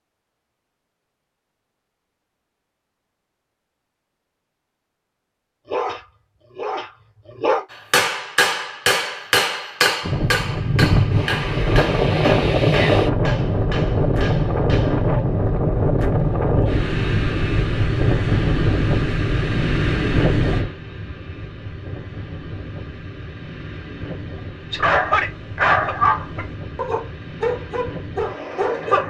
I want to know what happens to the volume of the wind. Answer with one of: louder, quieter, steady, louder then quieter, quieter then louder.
quieter.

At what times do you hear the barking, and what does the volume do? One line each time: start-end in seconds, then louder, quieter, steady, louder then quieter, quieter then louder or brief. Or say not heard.
5.7-7.7 brief
24.7-29.0 quieter.